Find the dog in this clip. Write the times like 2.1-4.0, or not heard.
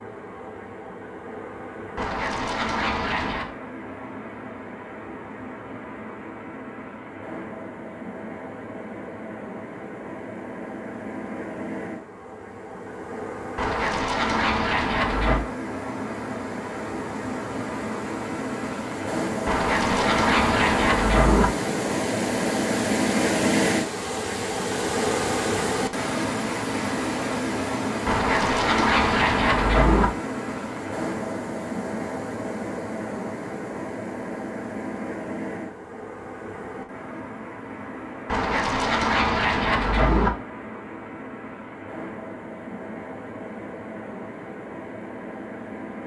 1.9-3.5, 13.6-15.4, 19.4-21.5, 28.1-30.1, 38.2-40.3.